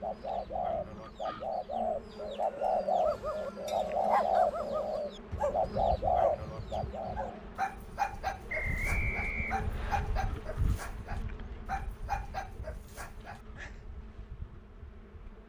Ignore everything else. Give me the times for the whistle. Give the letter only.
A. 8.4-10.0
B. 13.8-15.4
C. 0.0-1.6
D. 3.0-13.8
A.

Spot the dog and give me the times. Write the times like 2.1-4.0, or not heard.
3.0-13.8.